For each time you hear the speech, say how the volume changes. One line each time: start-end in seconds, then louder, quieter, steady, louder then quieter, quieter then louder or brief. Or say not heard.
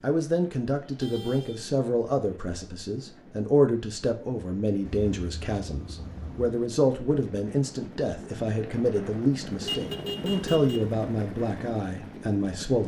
0.0-12.8 steady.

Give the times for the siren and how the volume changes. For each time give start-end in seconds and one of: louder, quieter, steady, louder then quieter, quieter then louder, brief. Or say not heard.
not heard.